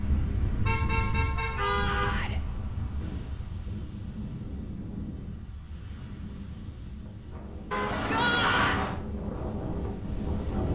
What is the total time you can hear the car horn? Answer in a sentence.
You can hear the car horn for 3 seconds altogether.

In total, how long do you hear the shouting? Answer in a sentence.
The shouting can be heard for 2 seconds in total.